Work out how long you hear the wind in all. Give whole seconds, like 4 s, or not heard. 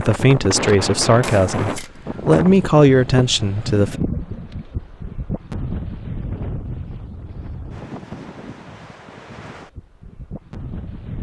11 s.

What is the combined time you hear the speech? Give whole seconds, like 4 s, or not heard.
4 s.